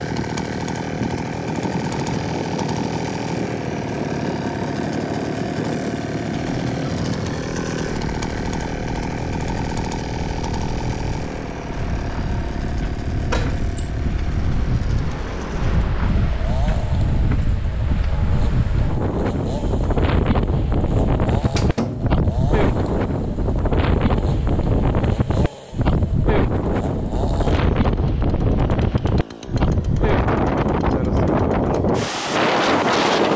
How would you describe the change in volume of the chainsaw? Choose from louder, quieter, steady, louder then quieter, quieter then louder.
quieter.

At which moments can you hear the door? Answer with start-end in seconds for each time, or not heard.
13.3-13.9, 21.4-22.2.